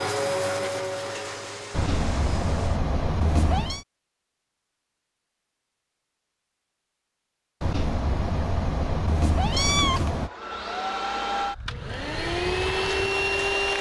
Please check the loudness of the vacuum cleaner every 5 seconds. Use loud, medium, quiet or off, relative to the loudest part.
loud, off, loud.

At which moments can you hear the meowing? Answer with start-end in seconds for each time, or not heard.
1.7-3.9, 7.6-10.3.